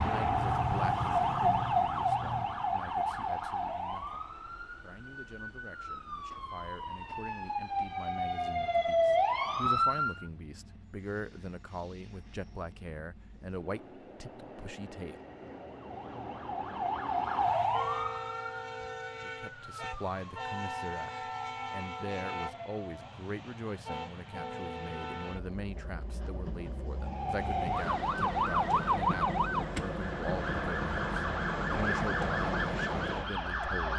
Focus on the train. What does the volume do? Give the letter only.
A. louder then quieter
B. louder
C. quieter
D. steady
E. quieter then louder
B.